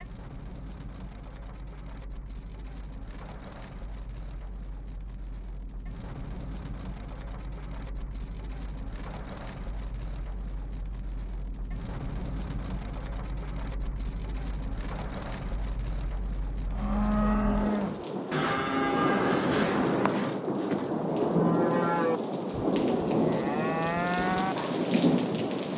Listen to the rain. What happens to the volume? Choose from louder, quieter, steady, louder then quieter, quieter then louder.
louder.